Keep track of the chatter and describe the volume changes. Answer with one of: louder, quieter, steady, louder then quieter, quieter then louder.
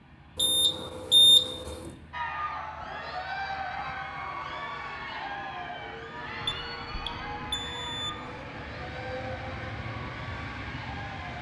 quieter.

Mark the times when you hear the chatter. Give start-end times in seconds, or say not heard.
2.1-11.3.